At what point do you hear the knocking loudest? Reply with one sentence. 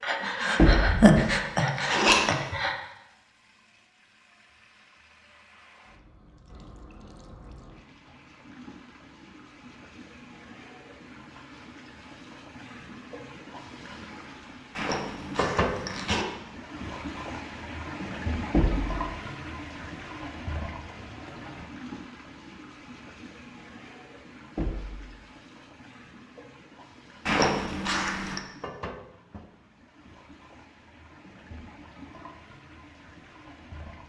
The volume of the knocking peaks at 1 second.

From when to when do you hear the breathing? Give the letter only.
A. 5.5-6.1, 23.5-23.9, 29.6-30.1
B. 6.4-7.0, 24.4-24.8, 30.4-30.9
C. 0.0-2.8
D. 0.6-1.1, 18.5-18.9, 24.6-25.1
C.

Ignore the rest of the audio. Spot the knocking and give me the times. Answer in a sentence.
You can hear the knocking from 0.6 to 1.1 s, from 18.5 to 18.9 s and from 24.6 to 25.1 s.